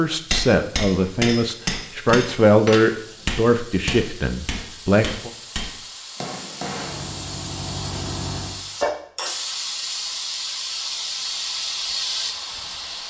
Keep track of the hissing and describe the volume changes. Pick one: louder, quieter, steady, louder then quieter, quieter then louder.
louder.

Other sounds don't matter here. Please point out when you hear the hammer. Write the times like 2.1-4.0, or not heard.
0.3-7.2.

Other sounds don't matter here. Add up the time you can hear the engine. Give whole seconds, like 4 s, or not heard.
2 s.